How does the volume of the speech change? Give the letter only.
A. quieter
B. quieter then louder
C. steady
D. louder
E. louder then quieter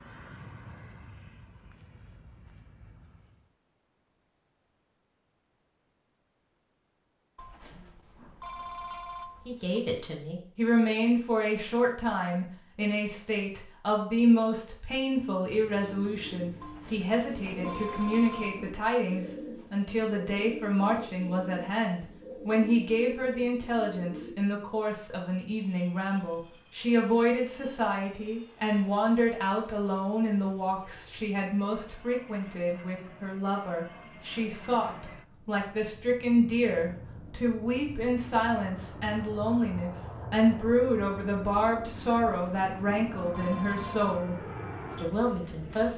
C.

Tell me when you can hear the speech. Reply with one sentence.
You can hear the speech from 9.4 to 45.9 s.